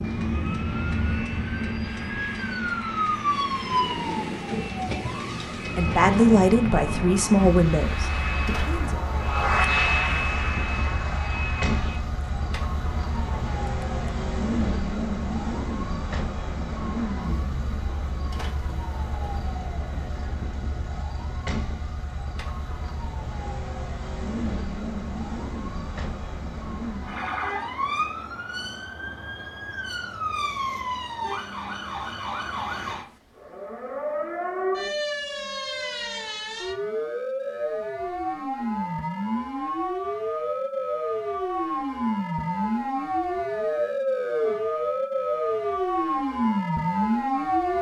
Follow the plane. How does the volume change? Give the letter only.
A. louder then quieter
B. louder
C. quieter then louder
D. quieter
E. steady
A.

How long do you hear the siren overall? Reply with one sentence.
You can hear the siren for 48 seconds altogether.